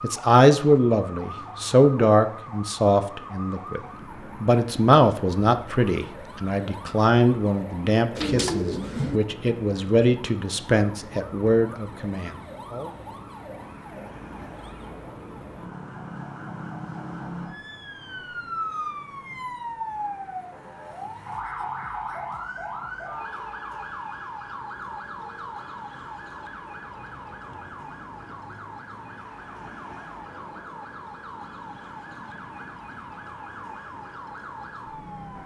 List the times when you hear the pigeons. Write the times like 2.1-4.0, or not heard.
8.2-9.2.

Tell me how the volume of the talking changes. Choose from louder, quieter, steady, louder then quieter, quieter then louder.
quieter.